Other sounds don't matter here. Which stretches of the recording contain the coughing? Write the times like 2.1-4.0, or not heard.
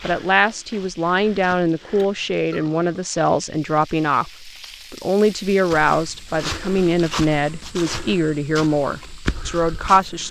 not heard.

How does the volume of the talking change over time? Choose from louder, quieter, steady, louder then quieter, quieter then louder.
steady.